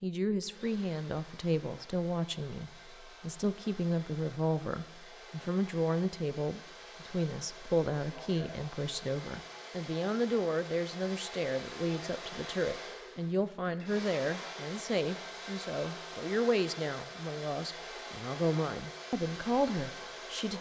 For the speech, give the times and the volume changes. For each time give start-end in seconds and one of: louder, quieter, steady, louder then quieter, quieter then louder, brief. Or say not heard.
0.0-20.5 steady.